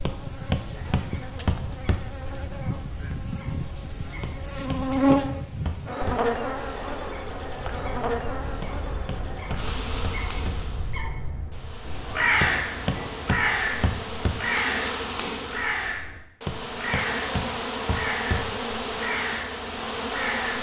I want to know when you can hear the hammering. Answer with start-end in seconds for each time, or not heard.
0.1-2.0, 4.2-6.2, 8.6-10.7, 12.4-14.4, 16.4-18.5.